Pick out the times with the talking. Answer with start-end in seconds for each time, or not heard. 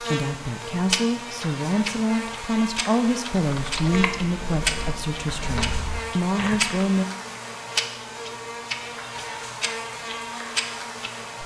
0.0-7.0.